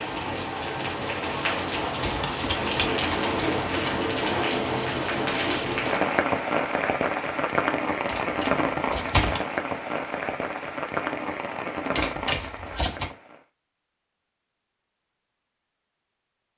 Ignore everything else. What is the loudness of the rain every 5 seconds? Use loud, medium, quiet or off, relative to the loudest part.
loud, loud, medium, off.